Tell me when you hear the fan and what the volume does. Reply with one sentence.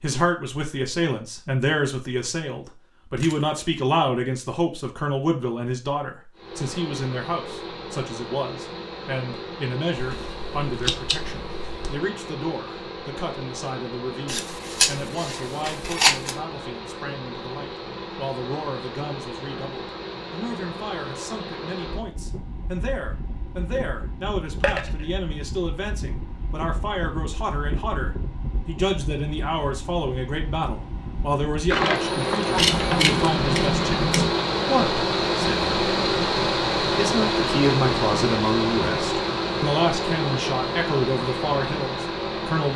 You can hear the fan from 6.3 to 42.7 s, getting louder.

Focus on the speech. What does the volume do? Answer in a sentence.
The volume of the speech goes down, then up.